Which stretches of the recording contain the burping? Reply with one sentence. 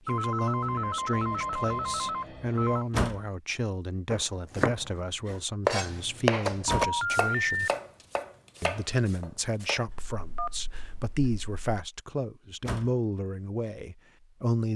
The burping can't be heard in this clip.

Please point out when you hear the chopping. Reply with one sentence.
You can hear the chopping from 4.0 to 9.8 s.